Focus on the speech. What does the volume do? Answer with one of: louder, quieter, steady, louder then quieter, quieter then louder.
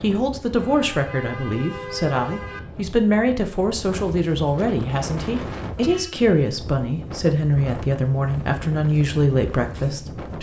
steady.